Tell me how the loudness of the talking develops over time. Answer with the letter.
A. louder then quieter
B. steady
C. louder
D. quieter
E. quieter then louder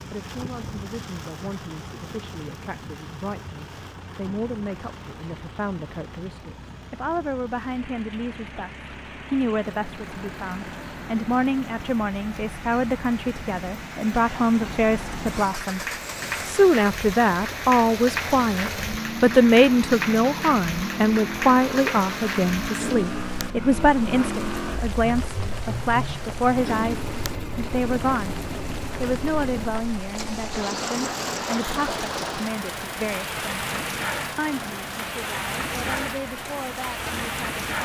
A.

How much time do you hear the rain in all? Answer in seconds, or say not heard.
38 s.